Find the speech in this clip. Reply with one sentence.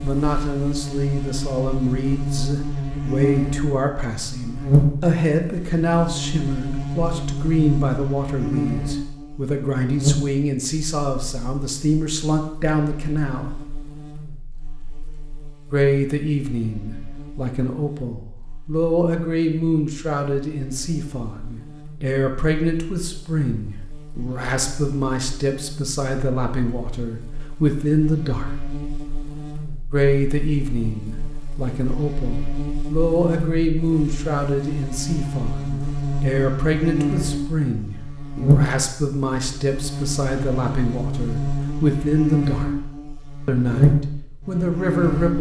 The speech can be heard from 0.0 to 13.6 s, from 15.7 to 28.6 s, from 29.9 to 42.7 s and from 43.5 to 45.3 s.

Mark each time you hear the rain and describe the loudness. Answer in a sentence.
The rain can't be heard in this clip.